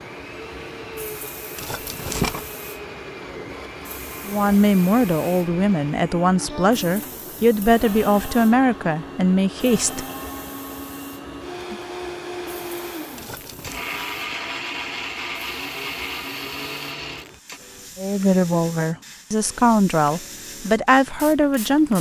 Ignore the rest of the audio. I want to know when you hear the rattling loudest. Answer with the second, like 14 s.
2 s.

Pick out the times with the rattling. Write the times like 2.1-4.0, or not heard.
1.6-2.5, 13.2-13.8.